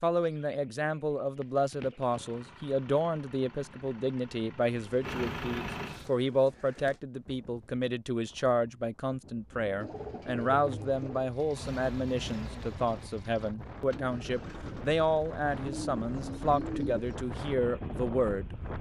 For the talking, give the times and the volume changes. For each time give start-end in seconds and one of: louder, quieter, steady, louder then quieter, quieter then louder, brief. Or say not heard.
0.0-18.6 steady.